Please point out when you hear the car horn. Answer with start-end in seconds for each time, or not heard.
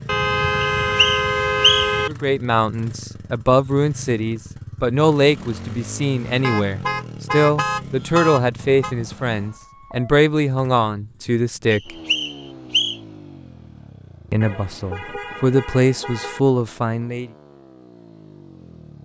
0.1-2.1, 6.4-8.9, 14.4-16.4.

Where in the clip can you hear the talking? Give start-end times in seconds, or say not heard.
2.0-11.9, 14.3-17.3.